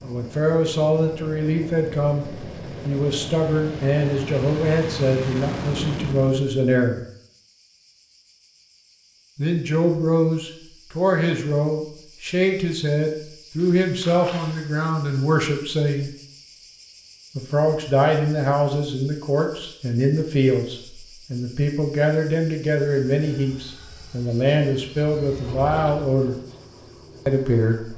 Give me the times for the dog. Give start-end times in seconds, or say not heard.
not heard.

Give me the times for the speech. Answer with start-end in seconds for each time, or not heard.
0.0-7.0, 9.3-16.1, 17.4-26.4, 27.2-27.9.